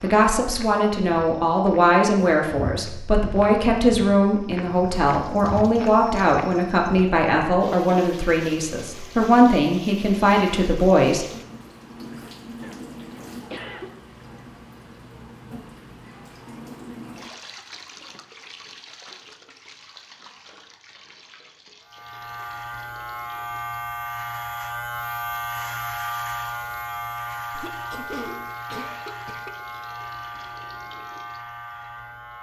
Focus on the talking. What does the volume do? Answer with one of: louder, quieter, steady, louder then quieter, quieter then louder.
steady.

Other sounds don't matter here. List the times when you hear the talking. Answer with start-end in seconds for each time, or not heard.
0.0-11.2.